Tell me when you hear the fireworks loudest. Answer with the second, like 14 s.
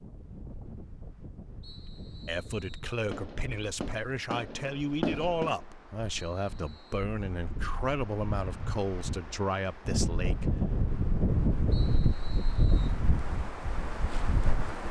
5 s.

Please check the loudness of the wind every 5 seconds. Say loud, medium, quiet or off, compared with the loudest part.
quiet, medium, loud.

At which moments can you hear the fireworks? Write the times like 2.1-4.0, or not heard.
3.1-5.6.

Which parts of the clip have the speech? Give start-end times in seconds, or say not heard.
2.2-10.5.